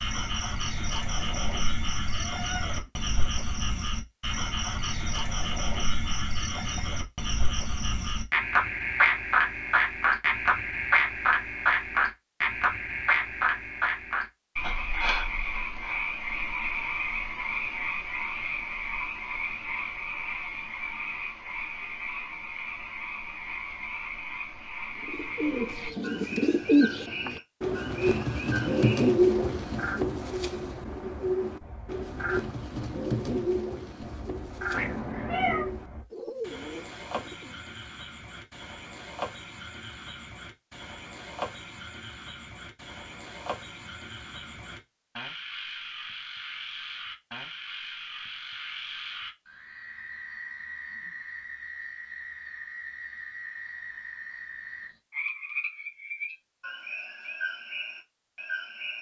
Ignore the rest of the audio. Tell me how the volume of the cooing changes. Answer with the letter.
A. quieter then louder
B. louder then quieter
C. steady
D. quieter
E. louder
D.